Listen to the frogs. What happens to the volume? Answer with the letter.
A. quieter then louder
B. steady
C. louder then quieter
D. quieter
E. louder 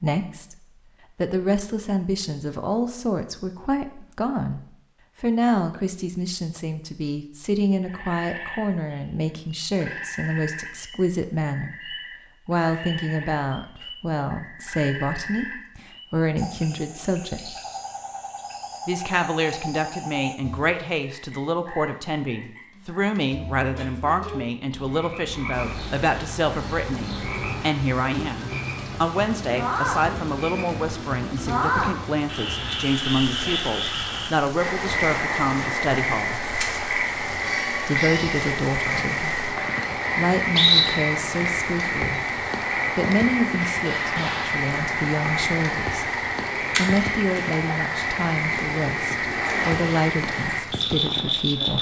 E.